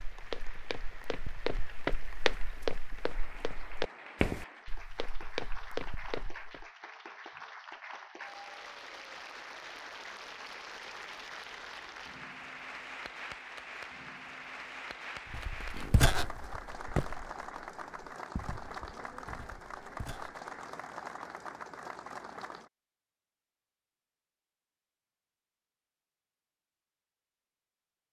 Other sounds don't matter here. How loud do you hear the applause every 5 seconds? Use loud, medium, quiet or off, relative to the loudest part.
medium, loud, loud, loud, loud, off.